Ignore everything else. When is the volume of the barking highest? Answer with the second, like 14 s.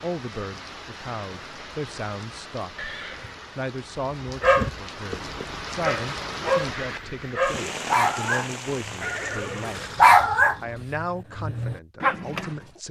10 s.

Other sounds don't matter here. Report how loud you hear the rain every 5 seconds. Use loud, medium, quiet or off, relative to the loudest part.
medium, loud, off.